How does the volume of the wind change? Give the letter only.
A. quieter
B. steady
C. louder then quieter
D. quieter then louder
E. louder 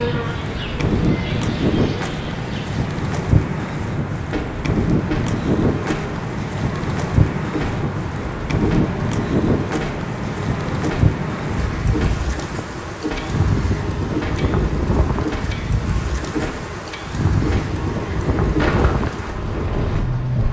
B.